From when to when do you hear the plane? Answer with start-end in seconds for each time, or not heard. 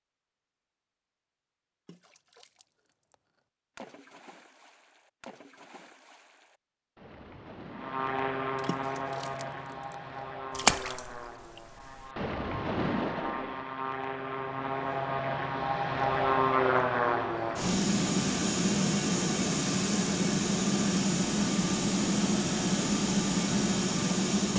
7.7-24.5.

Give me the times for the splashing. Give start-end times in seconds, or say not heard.
1.9-3.1, 3.8-13.7.